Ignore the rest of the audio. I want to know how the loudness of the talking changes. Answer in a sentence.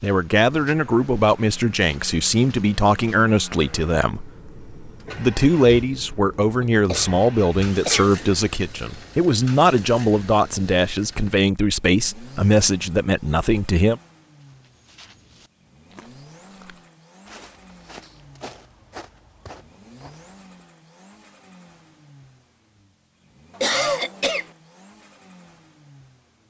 The loudness of the talking stays about the same.